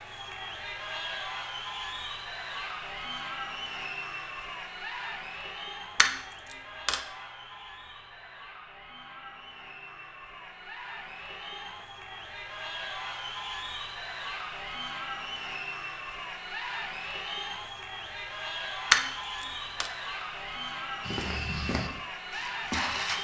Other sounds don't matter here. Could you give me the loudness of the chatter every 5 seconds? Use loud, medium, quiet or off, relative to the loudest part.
loud, medium, loud, loud, loud.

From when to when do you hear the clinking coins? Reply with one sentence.
The clinking coins can be heard from 6.0 to 7.0 s and from 18.9 to 19.9 s.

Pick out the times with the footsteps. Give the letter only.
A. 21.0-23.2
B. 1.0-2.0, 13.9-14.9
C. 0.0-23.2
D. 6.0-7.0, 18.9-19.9
A.